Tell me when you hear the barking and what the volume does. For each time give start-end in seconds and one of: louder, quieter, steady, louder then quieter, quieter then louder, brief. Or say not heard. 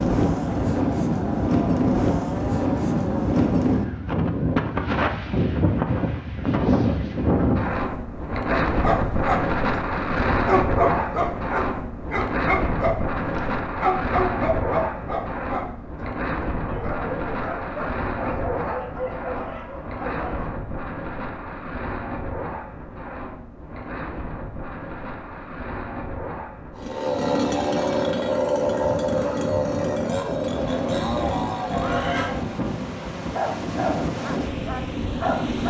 8.5-20.5 quieter
33.1-35.6 brief.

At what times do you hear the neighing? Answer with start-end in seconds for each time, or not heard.
31.7-32.4.